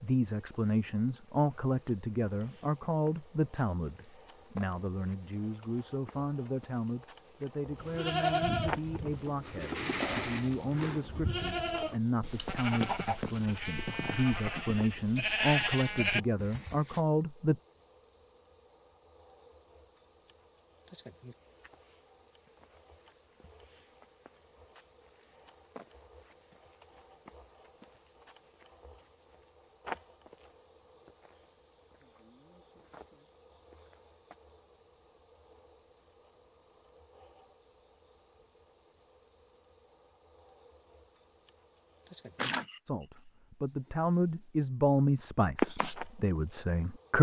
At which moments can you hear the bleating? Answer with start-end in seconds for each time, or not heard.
7.8-17.0.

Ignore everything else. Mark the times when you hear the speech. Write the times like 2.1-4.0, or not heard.
0.0-17.6, 42.9-47.1.